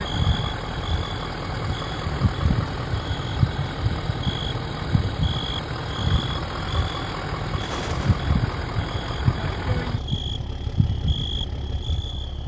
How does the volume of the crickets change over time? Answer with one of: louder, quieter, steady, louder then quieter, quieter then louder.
steady.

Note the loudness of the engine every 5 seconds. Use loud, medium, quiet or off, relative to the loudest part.
loud, loud, medium.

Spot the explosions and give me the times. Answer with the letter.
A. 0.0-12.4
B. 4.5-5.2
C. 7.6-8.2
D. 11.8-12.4
C.